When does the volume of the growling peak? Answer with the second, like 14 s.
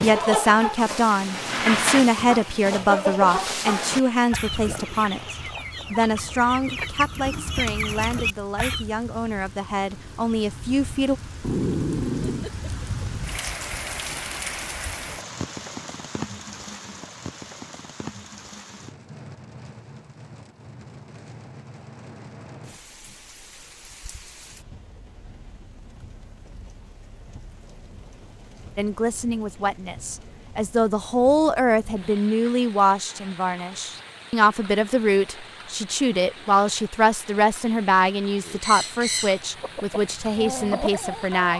12 s.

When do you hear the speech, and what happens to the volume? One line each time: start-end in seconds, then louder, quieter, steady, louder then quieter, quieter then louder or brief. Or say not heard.
0.0-11.2 quieter
28.8-41.5 steady.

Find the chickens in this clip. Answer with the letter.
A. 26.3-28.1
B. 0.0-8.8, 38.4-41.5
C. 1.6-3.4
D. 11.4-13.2
B.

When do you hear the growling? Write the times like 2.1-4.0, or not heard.
11.4-13.2.